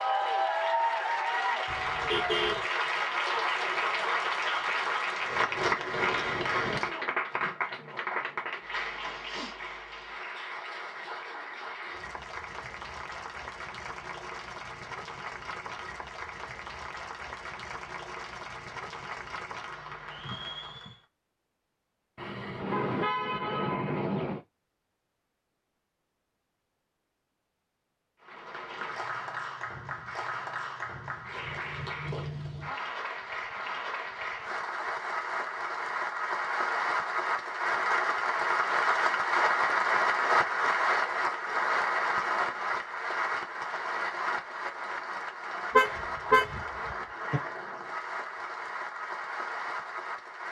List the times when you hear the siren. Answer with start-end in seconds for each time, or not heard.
not heard.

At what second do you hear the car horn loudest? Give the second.
46 s.